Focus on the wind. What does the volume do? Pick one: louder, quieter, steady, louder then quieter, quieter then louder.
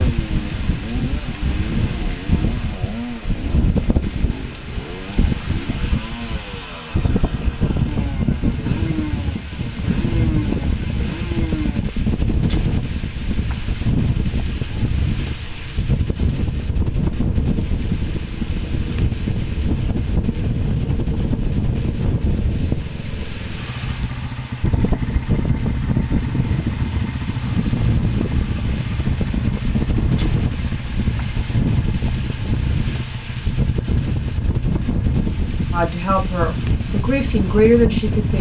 steady.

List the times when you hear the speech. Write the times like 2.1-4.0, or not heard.
35.7-38.3.